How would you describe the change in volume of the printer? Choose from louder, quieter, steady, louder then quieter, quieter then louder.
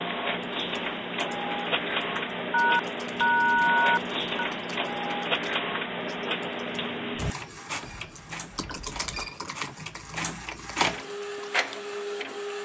quieter then louder.